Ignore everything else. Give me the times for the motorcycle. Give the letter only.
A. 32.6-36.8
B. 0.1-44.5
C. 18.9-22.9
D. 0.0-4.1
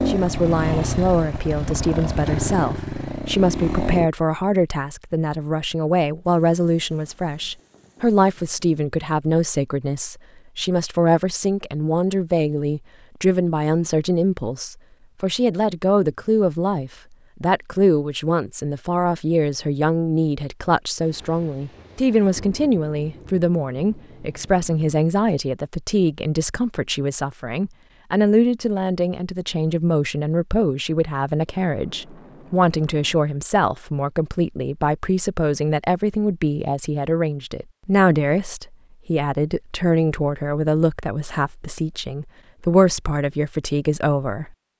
D.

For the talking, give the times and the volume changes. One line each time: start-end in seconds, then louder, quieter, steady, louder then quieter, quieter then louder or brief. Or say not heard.
0.1-44.5 steady.